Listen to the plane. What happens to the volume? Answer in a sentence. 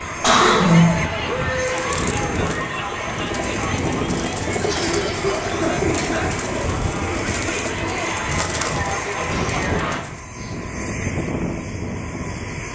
The loudness of the plane stays about the same.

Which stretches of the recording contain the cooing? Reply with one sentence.
You can hear the cooing from 1.6 to 10.2 s.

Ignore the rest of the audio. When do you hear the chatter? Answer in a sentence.
You can hear the chatter from 0.0 to 10.1 s.